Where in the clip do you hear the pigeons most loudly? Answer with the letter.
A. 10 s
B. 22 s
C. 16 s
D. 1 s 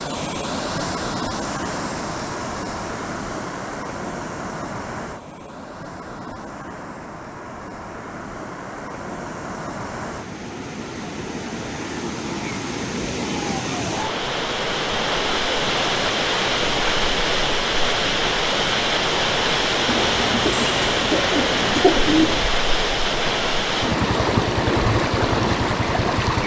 B.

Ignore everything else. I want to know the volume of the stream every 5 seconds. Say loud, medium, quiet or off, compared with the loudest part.
medium, quiet, medium, loud, loud, loud.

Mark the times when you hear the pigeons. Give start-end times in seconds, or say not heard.
19.9-22.4.